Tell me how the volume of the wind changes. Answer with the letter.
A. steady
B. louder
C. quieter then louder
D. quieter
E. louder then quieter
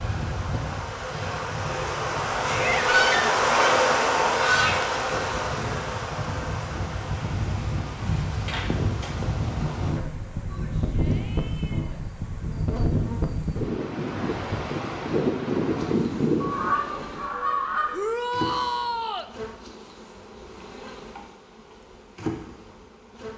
B.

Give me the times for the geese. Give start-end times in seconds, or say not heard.
2.9-4.8, 16.4-17.9.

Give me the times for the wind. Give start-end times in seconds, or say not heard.
0.0-17.2.